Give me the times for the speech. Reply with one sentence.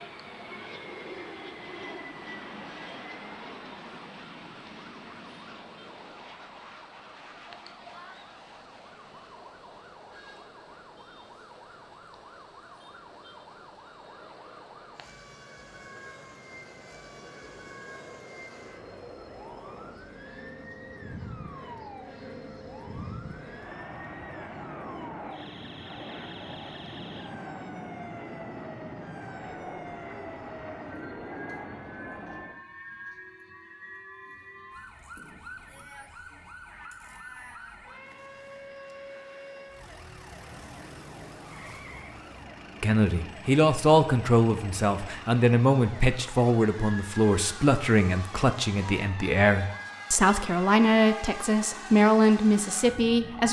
You can hear the speech from 42.8 to 53.4 s.